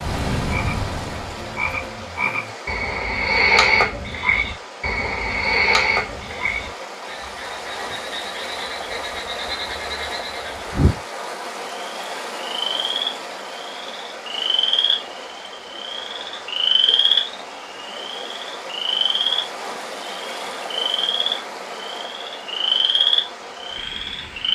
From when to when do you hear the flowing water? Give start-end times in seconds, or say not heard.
0.0-24.5.